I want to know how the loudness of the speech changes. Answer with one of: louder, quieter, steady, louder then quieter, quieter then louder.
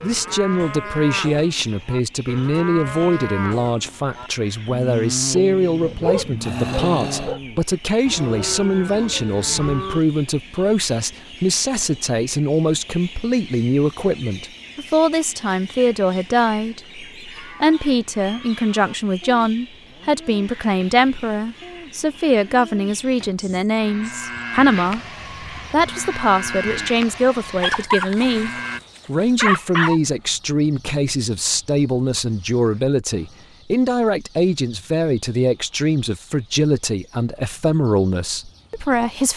steady.